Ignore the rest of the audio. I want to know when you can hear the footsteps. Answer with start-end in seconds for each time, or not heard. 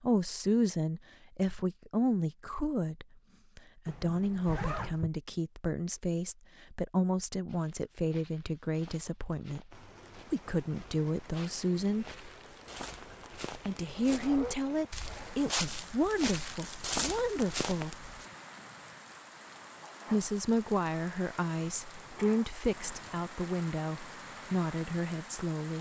7.5-18.2.